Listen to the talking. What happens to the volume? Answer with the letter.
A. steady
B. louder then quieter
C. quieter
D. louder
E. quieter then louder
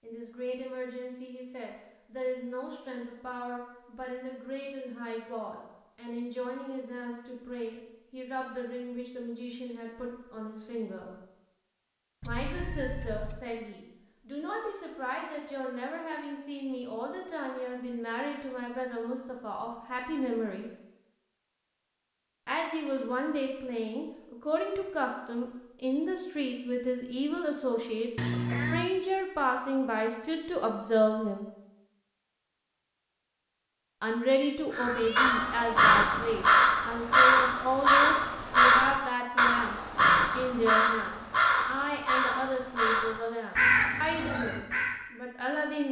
D.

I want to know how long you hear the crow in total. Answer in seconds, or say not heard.
10 s.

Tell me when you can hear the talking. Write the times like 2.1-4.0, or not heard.
0.0-11.2, 12.2-20.7, 22.4-31.4, 34.0-45.8.